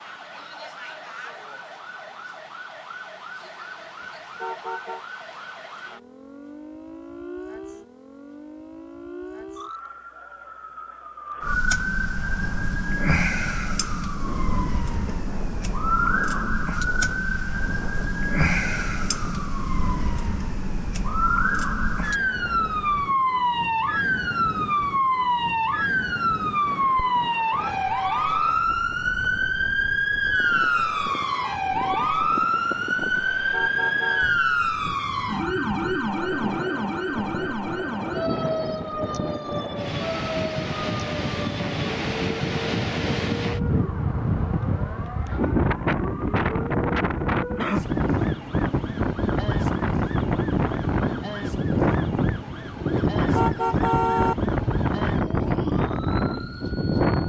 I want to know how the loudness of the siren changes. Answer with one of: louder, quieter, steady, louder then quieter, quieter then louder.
louder then quieter.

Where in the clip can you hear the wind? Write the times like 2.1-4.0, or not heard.
12.3-57.2.